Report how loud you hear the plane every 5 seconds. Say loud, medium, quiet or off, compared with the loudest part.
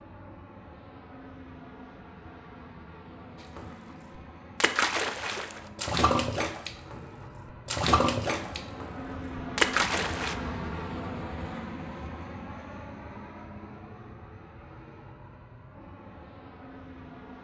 medium, loud, loud, medium.